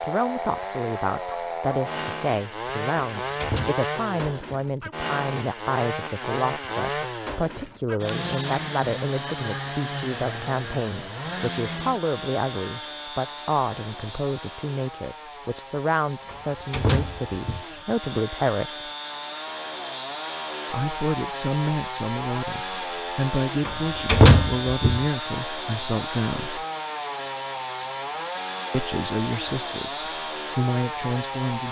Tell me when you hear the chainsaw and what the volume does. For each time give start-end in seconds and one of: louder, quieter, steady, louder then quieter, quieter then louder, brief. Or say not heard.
0.0-31.6 quieter then louder.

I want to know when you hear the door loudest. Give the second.
24 s.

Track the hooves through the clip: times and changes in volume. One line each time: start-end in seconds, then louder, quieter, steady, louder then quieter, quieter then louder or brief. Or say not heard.
not heard.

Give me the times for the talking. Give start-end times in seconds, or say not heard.
0.0-18.9, 20.7-26.6, 28.7-31.6.